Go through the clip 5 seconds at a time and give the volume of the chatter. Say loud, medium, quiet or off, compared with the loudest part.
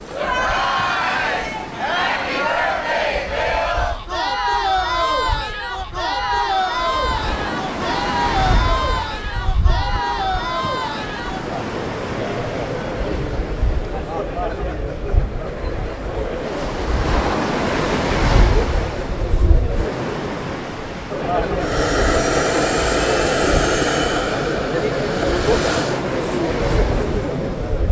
loud, loud, medium, medium, loud, loud.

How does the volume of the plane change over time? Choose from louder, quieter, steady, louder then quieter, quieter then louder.
quieter.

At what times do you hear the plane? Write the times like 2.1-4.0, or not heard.
21.6-26.1.